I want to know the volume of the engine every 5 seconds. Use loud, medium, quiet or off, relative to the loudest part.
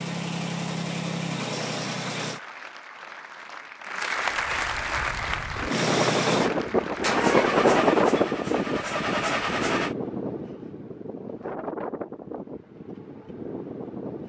loud, loud, off.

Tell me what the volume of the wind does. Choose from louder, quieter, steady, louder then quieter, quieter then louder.
louder then quieter.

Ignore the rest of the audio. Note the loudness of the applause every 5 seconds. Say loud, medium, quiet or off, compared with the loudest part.
loud, loud, off.